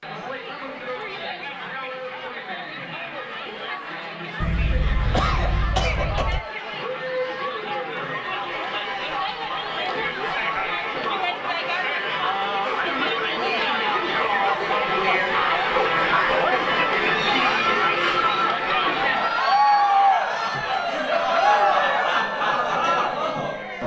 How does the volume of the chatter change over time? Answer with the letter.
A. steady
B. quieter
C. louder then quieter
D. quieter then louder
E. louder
E.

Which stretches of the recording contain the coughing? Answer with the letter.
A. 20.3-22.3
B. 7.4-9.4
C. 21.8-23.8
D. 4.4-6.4
D.